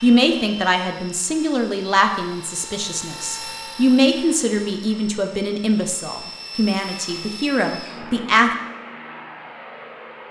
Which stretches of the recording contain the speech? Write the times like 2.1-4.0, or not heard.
0.0-8.5.